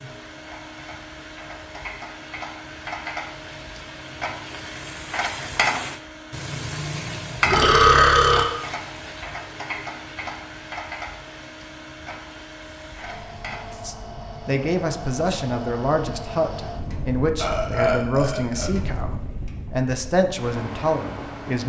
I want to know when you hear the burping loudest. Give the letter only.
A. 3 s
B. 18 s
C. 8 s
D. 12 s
C.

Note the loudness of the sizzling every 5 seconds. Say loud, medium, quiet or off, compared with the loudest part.
medium, loud, medium, off, off.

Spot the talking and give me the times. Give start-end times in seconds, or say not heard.
13.8-21.6.